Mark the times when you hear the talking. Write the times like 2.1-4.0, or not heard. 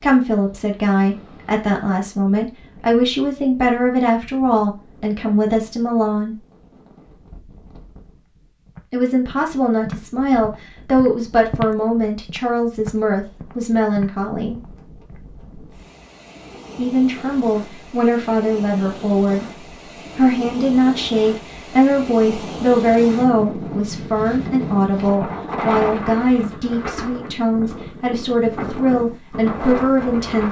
0.0-6.3, 8.9-14.6, 16.8-19.4, 20.1-30.4.